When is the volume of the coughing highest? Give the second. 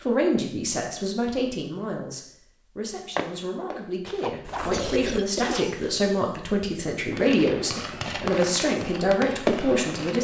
5 s.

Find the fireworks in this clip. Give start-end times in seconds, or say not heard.
7.1-10.1.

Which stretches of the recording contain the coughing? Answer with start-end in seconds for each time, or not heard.
4.0-6.4.